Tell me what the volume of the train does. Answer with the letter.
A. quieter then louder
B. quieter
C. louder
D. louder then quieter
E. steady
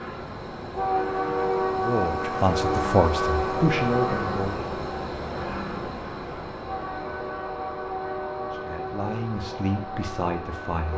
B.